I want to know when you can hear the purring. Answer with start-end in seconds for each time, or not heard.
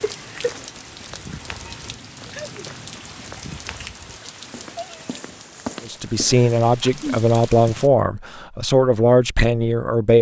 not heard.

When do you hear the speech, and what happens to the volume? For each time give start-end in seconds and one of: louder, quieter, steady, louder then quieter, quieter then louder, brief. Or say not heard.
5.8-10.1 steady.